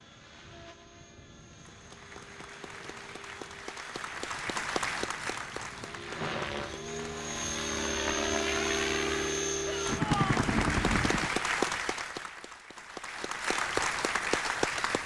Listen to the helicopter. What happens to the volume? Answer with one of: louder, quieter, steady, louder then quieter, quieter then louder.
louder.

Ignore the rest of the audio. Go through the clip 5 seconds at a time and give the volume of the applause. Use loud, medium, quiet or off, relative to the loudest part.
medium, medium, loud.